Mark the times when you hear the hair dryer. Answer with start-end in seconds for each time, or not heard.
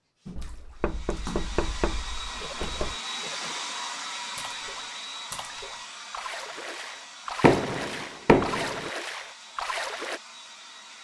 0.2-11.0.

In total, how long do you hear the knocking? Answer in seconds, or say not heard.
4 s.